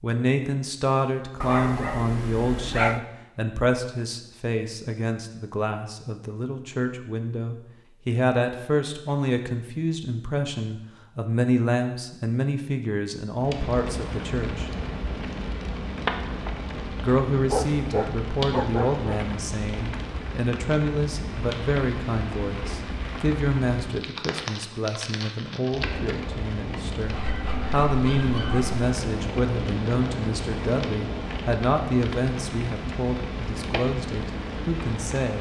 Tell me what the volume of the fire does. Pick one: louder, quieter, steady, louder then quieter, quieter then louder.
steady.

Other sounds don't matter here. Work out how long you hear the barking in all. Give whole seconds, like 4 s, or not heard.
5 s.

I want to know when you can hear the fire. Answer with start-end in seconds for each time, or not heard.
13.3-35.3.